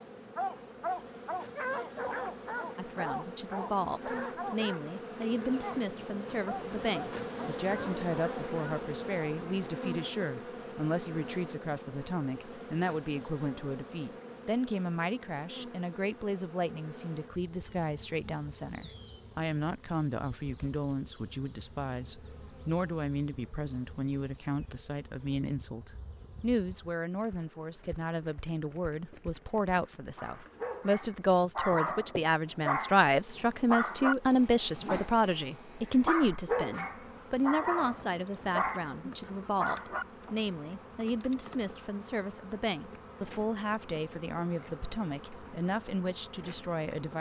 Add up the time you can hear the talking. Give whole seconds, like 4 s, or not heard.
44 s.